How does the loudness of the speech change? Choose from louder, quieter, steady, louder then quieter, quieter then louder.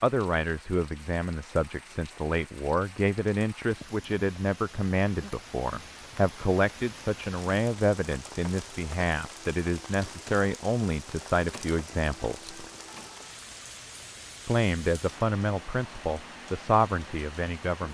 steady.